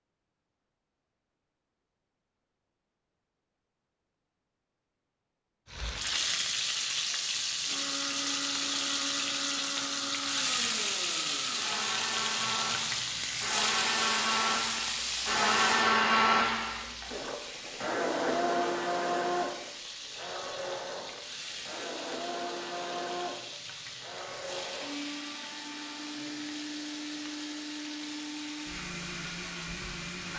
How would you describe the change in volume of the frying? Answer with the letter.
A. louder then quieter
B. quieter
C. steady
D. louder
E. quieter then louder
B.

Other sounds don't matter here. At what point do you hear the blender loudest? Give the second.
16 s.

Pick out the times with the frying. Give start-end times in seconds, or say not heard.
5.7-30.3.